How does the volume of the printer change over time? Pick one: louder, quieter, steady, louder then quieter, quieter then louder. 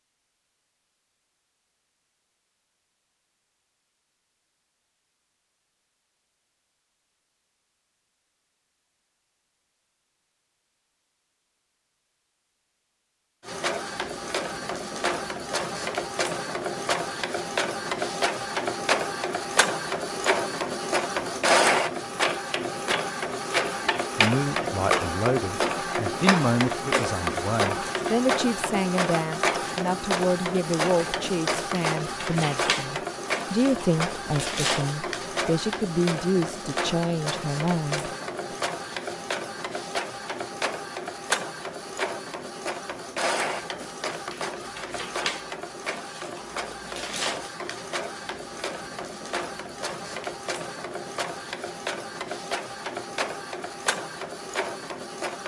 quieter.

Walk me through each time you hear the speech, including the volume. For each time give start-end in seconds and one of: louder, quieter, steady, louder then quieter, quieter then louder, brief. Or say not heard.
24.1-38.1 steady.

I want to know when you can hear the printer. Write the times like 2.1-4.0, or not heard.
13.4-55.4.